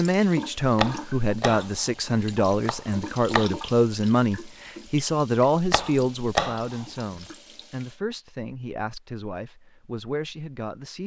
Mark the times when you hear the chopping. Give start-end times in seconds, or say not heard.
0.8-1.6, 2.6-3.5, 5.7-6.8.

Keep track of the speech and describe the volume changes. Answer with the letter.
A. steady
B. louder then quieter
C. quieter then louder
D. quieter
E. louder
D.